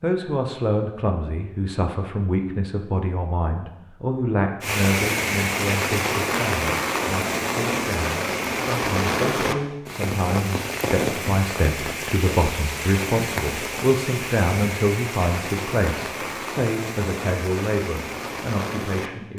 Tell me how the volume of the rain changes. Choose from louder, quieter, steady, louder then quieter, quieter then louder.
quieter.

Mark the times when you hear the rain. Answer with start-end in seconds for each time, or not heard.
4.6-19.3.